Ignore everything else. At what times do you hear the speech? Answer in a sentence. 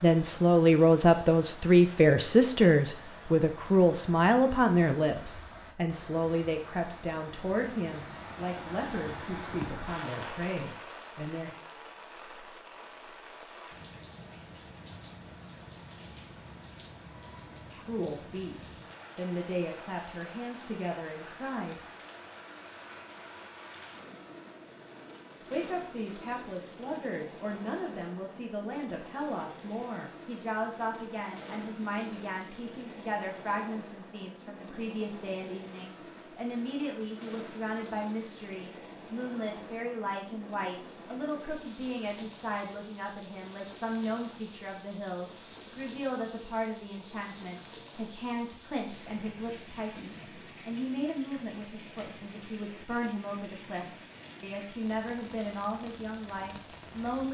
You can hear the speech from 0.0 to 11.5 s, from 17.8 to 21.8 s and from 25.5 to 57.2 s.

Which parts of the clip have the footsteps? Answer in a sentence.
The footsteps can't be heard in this clip.